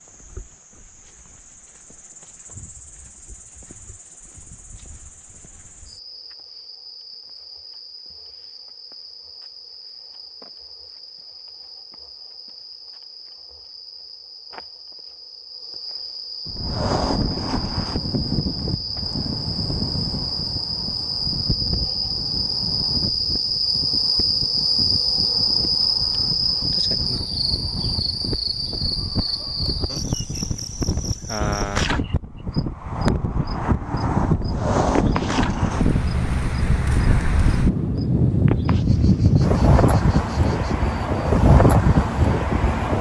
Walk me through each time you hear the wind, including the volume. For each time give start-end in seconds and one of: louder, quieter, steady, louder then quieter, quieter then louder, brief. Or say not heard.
16.4-42.9 quieter then louder.